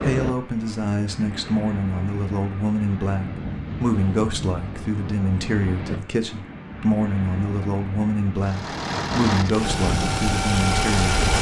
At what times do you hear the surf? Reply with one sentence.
The surf can be heard from 0.0 to 11.3 s.